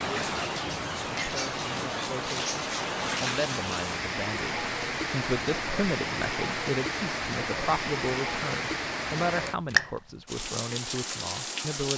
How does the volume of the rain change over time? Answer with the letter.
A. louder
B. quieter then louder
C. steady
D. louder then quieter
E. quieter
C.